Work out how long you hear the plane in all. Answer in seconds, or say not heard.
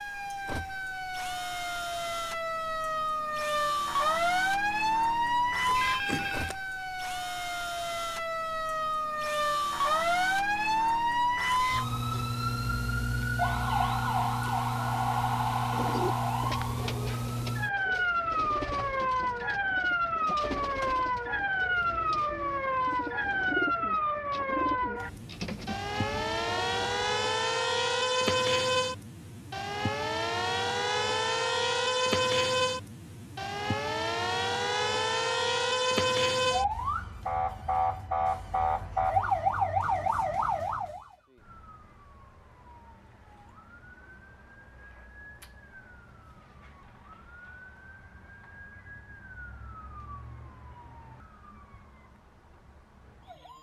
not heard.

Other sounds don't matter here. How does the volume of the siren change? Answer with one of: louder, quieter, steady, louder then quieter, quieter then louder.
quieter.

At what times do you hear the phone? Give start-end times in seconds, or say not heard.
5.7-6.5.